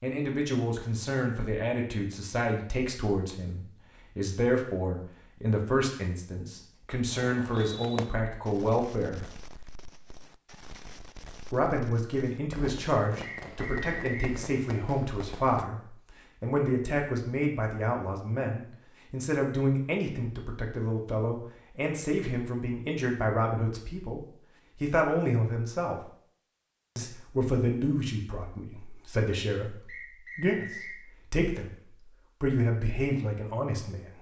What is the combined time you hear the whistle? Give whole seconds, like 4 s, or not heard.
3 s.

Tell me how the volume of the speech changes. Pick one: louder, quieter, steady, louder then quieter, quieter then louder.
steady.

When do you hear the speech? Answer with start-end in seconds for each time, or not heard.
0.0-9.3, 11.4-26.1, 26.9-34.1.